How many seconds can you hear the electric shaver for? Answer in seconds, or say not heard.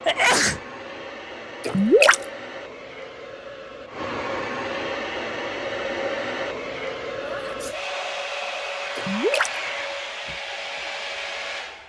not heard.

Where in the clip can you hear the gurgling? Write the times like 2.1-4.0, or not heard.
1.6-2.2, 8.9-9.5.